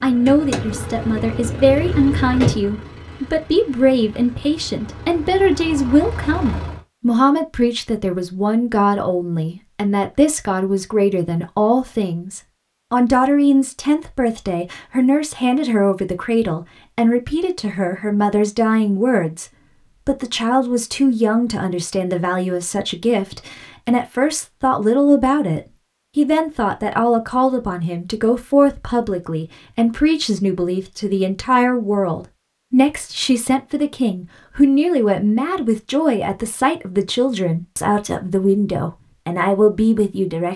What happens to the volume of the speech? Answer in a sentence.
The loudness of the speech stays about the same.